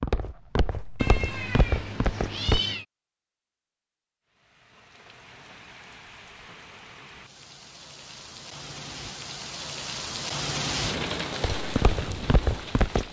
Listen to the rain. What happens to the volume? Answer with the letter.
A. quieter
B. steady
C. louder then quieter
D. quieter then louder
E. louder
E.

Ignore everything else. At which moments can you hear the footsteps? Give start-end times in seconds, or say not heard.
0.0-2.6, 11.4-13.0.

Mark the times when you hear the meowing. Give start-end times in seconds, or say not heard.
0.9-2.9.